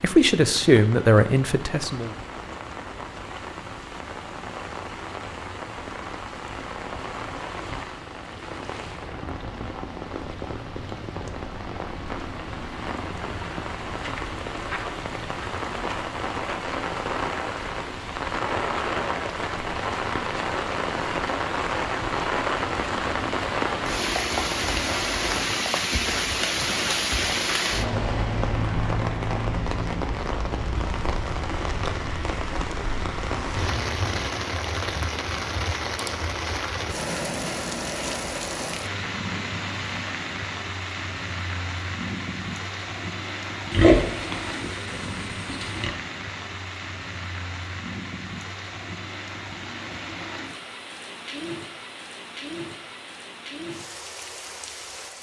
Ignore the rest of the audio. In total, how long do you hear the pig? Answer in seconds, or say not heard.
2 s.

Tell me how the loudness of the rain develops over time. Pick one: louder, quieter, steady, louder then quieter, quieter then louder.
louder then quieter.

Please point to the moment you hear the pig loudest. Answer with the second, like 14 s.
44 s.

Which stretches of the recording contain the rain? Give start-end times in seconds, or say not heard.
0.0-55.1.